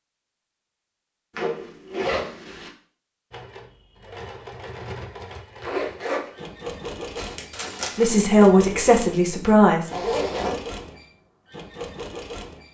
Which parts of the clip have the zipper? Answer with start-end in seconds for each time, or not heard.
1.4-2.7, 5.6-6.4, 9.9-10.6.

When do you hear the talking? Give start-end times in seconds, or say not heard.
8.0-9.9.